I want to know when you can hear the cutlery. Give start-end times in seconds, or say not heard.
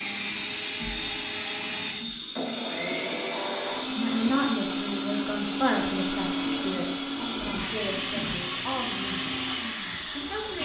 not heard.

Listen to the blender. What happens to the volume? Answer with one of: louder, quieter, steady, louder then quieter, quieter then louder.
steady.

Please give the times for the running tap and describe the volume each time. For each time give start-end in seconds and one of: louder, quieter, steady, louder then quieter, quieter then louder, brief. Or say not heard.
0.0-10.6 steady.